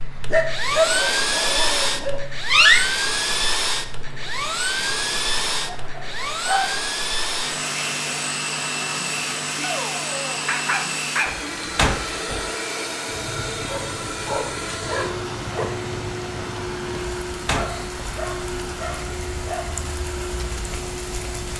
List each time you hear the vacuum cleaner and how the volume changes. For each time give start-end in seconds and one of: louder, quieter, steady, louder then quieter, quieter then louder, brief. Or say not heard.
0.0-21.5 quieter.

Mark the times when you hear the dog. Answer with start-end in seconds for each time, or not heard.
0.2-2.2, 5.7-6.8, 9.6-11.3, 13.7-15.7, 17.5-19.8.